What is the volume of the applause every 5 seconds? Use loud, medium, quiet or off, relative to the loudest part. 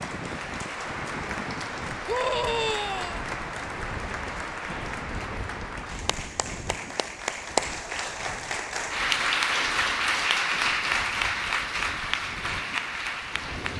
medium, loud, loud.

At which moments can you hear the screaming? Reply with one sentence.
You can hear the screaming from 2.0 to 3.2 s.